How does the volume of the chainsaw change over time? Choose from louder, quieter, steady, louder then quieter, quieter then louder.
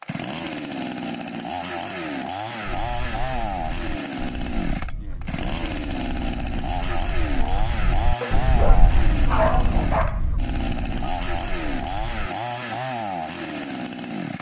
steady.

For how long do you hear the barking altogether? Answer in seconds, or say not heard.
2 s.